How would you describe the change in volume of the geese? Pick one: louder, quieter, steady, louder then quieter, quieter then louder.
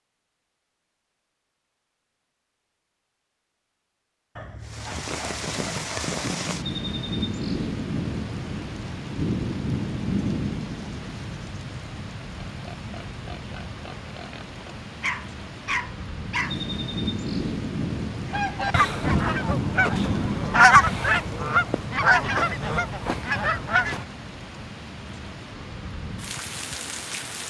louder then quieter.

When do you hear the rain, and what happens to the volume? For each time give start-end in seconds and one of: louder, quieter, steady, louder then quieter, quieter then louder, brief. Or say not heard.
4.7-27.4 quieter.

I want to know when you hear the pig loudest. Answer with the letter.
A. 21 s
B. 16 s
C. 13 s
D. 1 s
C.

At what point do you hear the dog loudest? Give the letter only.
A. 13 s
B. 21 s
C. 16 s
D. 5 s
C.